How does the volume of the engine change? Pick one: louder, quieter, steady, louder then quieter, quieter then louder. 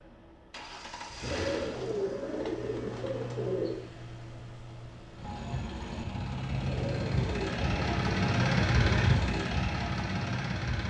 louder.